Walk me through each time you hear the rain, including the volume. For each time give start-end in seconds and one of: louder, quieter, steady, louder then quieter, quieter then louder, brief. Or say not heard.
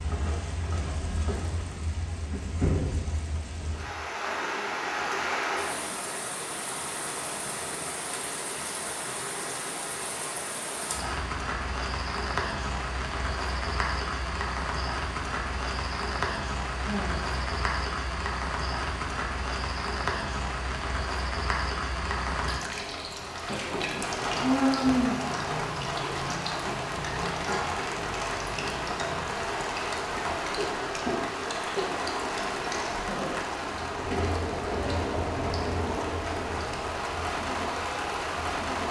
0.0-38.8 steady.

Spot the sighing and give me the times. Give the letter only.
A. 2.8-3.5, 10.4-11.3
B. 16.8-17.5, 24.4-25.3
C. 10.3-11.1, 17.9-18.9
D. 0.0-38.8
B.